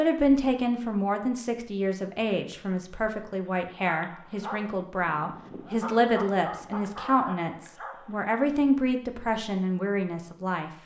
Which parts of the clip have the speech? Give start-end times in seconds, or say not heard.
0.0-10.7.